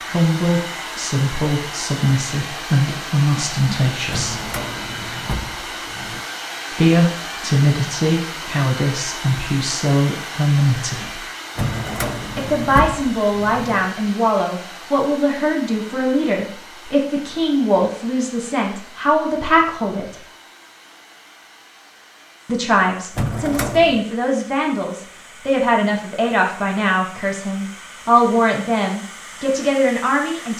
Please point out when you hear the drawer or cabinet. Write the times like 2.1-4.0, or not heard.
4.1-6.2, 11.6-13.9, 23.1-24.0.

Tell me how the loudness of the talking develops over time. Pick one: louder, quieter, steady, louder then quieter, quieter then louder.
steady.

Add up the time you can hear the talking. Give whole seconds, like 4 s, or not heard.
25 s.